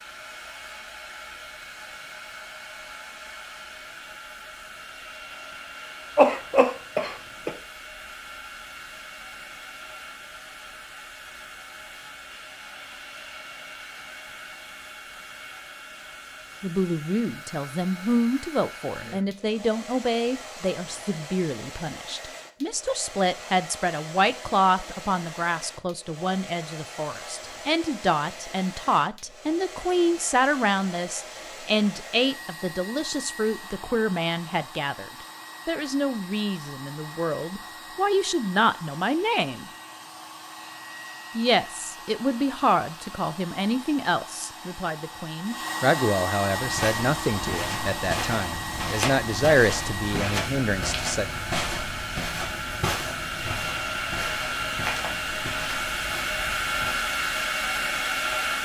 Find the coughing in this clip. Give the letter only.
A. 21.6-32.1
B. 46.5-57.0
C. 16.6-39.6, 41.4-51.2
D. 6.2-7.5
D.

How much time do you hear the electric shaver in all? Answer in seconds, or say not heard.
not heard.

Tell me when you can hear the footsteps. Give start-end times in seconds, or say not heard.
46.5-57.0.